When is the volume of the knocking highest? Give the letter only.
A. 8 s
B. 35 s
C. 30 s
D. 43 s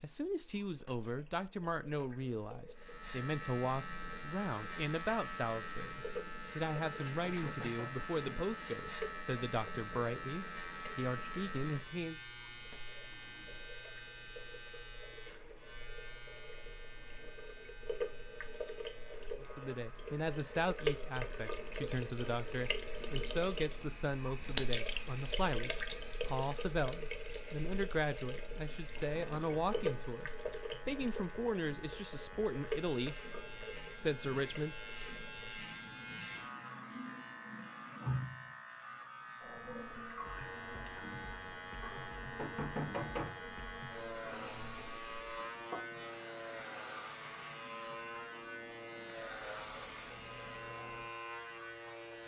D.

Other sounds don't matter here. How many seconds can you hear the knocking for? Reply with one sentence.
You can hear the knocking for 3 seconds altogether.